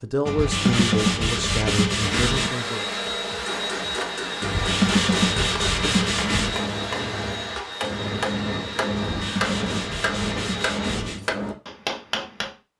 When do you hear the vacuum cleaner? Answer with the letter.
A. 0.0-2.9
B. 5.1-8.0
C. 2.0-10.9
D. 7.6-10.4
C.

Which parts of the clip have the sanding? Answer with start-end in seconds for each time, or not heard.
0.2-2.5, 4.4-6.7, 9.0-11.2.